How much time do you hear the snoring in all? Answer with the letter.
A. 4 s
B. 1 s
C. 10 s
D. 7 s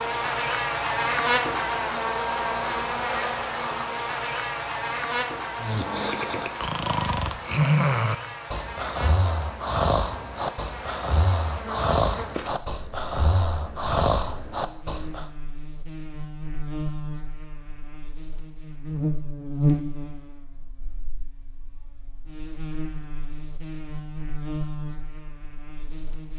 C.